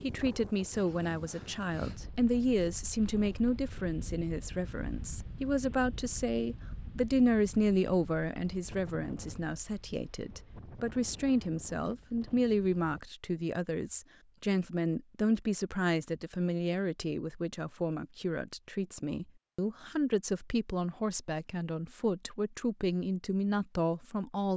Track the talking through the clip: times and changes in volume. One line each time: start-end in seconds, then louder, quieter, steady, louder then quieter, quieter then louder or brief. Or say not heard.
0.0-24.5 steady.